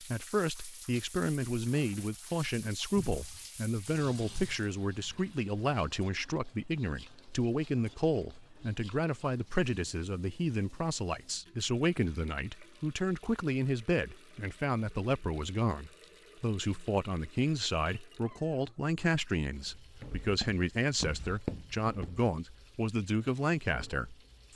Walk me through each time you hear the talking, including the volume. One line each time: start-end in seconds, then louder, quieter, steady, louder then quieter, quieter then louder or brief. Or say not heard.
0.0-24.5 steady.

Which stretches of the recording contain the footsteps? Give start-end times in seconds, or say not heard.
19.6-22.1.